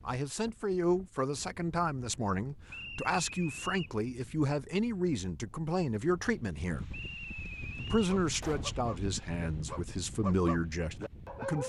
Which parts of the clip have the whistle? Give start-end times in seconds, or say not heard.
2.6-3.9, 6.9-8.0.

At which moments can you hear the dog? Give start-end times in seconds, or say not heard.
8.1-11.6.